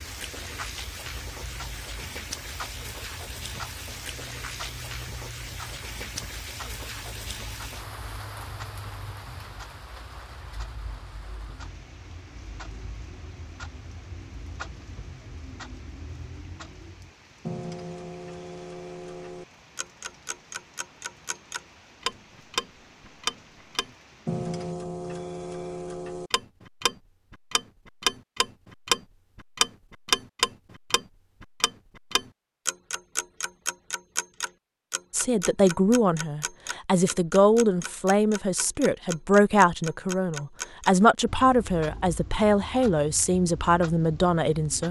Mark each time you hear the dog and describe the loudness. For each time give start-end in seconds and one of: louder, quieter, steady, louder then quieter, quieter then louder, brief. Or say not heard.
not heard.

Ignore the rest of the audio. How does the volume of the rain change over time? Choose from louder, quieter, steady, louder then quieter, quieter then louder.
quieter.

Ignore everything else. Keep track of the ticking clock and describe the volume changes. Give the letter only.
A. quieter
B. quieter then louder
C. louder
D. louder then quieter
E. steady
D.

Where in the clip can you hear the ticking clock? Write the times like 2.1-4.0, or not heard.
0.0-44.8.